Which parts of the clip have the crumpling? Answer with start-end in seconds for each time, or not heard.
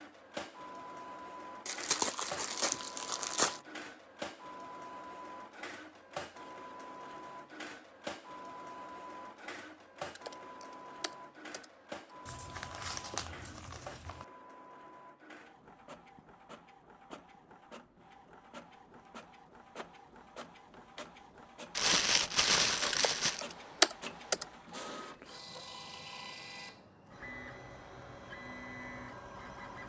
1.6-3.6, 12.2-14.2, 21.8-23.4.